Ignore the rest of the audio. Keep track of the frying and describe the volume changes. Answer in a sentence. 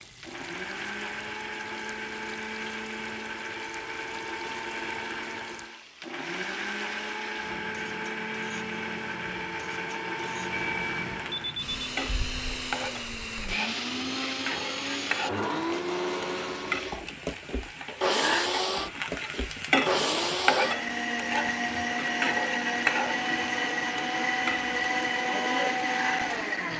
The volume of the frying goes up.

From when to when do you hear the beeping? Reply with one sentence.
The beeping can be heard from 10.5 to 11.9 s.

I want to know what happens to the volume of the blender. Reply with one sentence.
The loudness of the blender goes up.